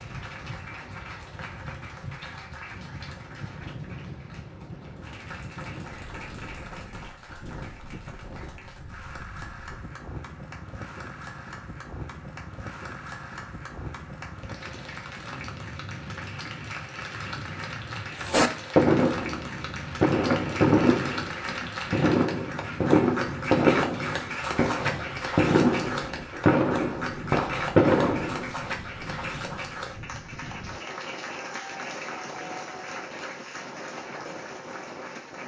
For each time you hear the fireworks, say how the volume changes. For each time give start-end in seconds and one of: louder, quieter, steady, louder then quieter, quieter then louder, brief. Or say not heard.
18.2-28.5 steady.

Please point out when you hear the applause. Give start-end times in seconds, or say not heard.
0.0-35.4.